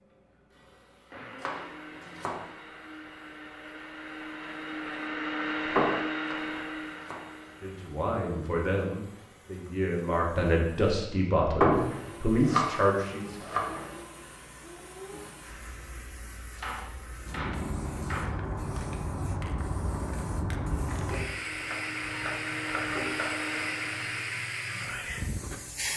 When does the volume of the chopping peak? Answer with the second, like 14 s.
13 s.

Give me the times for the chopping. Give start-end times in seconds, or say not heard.
1.4-2.4, 6.2-7.2, 12.4-13.8, 16.6-18.4, 21.5-23.3.